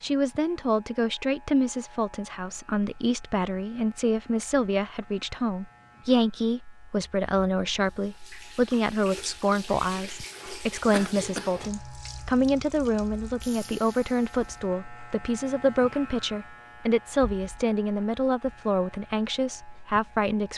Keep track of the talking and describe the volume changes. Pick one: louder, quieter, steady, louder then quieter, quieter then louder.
steady.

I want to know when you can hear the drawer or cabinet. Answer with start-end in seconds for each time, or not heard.
not heard.